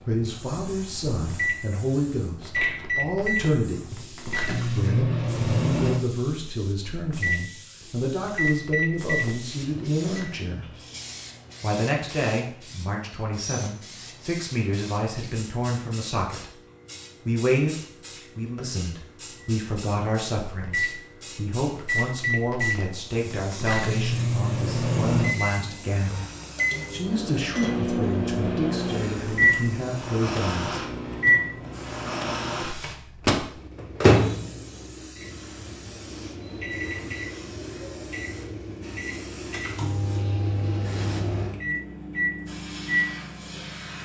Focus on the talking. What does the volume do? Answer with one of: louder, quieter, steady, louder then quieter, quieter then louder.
steady.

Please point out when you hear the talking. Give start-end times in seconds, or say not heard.
0.1-10.8, 11.6-16.6, 17.2-26.3, 26.9-30.8.